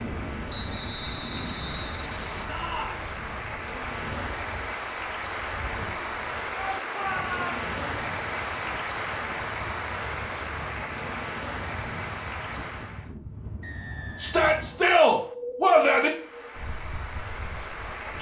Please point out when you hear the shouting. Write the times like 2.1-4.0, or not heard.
2.5-3.0, 6.5-7.6, 14.2-16.1.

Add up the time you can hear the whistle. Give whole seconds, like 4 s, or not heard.
4 s.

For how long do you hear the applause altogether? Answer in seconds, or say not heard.
15 s.